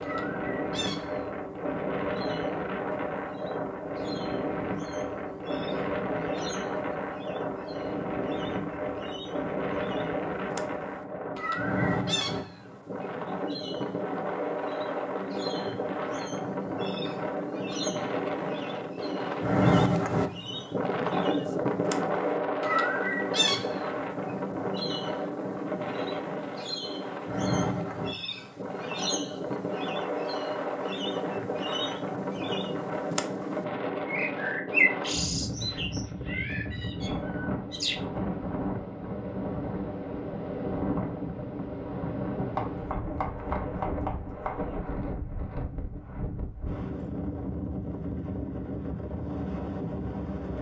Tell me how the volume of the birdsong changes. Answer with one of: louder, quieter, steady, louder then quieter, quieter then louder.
louder.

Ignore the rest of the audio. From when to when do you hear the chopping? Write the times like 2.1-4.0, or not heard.
42.5-44.5.